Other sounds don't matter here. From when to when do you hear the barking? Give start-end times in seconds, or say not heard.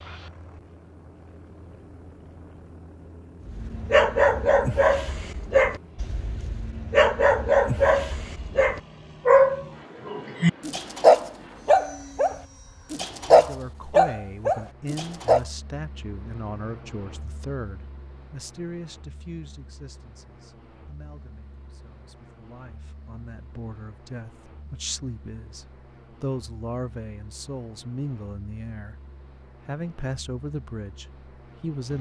3.5-15.4.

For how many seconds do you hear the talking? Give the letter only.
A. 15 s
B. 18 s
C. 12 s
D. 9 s
B.